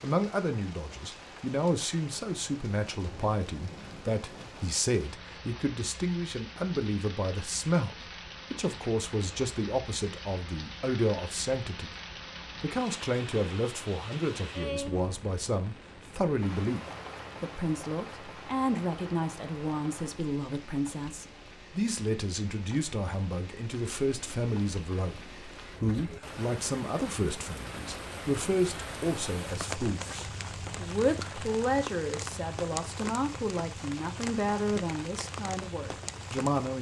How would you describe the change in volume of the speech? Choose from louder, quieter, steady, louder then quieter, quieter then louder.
steady.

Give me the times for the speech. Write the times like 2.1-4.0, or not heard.
0.0-11.9, 12.6-16.8, 17.4-36.7.